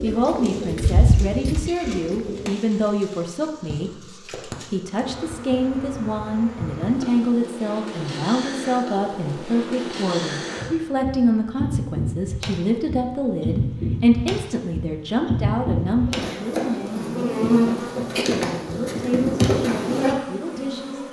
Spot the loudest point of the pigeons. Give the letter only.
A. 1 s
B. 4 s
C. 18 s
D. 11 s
A.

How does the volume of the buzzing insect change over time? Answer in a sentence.
The loudness of the buzzing insect goes up.